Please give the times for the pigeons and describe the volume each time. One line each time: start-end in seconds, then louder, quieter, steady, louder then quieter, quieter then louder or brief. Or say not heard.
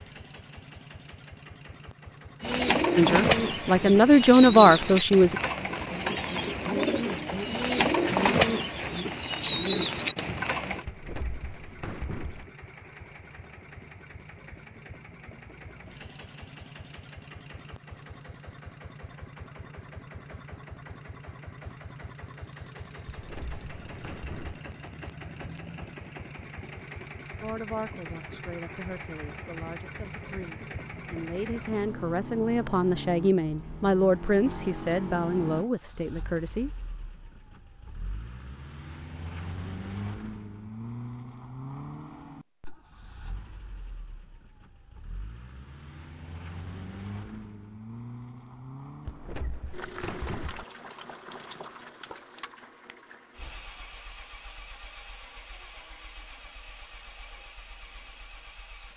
2.4-10.8 steady.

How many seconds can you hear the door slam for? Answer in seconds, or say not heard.
5 s.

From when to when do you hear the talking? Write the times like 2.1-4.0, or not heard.
3.0-5.3, 27.4-36.7.